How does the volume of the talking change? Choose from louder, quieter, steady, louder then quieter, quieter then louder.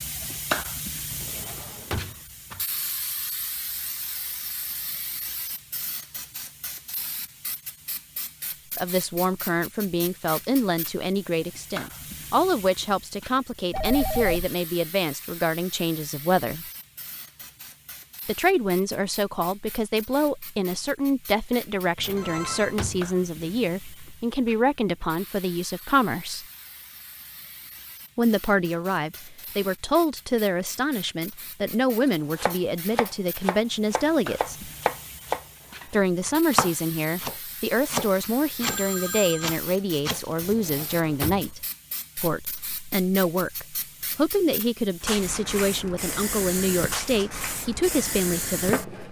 steady.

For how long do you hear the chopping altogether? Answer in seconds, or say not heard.
8 s.